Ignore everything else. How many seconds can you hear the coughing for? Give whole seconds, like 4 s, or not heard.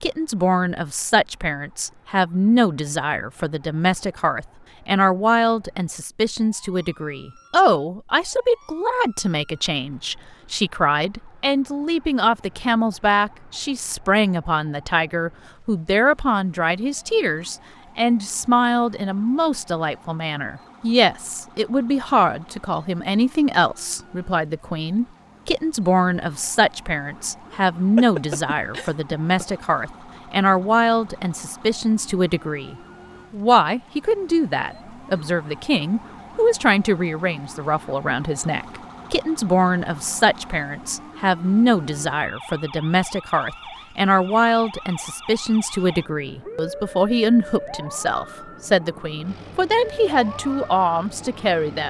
2 s.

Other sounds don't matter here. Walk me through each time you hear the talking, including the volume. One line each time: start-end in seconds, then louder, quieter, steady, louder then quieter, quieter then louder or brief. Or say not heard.
0.0-51.8 steady.